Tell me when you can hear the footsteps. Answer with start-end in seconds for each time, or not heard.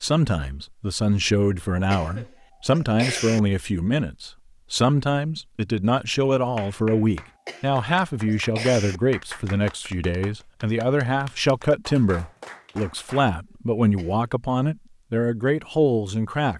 not heard.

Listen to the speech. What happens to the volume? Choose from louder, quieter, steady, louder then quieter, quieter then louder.
steady.